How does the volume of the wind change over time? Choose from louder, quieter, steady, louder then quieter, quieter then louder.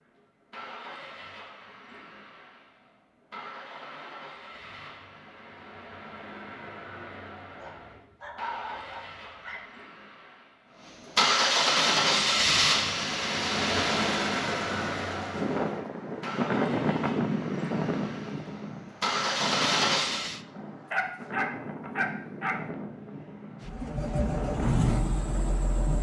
louder then quieter.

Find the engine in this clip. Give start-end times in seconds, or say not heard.
0.0-20.4, 23.6-25.9.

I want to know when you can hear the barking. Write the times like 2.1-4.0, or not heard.
7.5-9.6, 20.9-22.6.